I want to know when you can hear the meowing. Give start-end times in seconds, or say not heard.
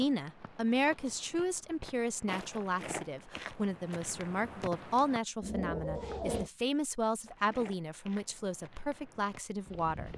5.4-6.5.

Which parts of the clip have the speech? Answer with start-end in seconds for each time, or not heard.
0.0-10.1.